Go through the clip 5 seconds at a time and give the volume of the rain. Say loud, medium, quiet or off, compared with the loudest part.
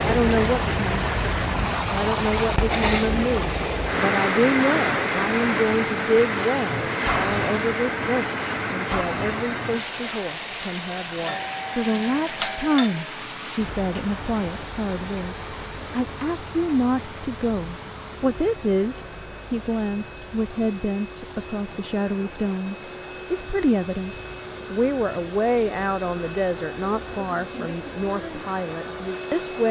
loud, loud, medium, quiet, quiet, quiet.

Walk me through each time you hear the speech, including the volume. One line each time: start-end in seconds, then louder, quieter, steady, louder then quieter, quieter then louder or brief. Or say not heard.
0.0-29.6 steady.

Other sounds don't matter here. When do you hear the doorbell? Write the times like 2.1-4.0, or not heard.
11.2-12.9.